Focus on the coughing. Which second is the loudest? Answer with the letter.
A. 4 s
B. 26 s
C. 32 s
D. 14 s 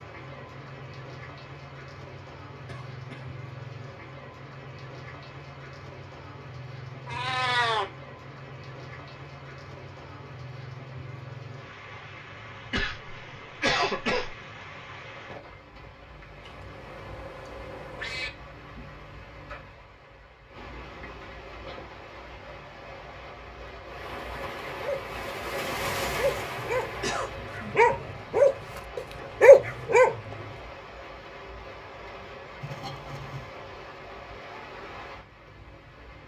D.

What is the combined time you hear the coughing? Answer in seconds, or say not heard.
3 s.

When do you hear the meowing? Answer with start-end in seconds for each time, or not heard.
7.0-7.8, 16.4-18.3, 32.6-33.5.